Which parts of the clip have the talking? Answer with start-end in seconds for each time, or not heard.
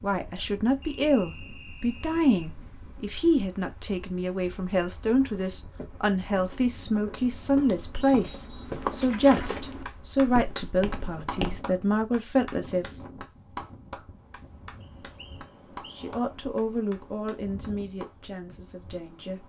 0.0-12.8, 15.9-19.4.